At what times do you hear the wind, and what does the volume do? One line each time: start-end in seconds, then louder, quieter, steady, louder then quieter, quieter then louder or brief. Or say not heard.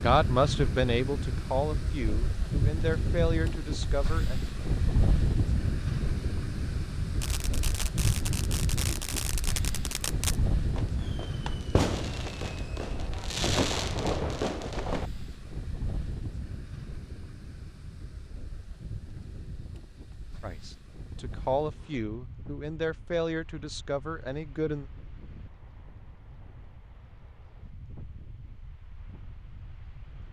0.0-30.2 quieter.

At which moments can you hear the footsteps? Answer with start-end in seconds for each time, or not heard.
not heard.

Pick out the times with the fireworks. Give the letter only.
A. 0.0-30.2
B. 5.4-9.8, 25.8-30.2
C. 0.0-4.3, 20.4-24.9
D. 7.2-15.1
D.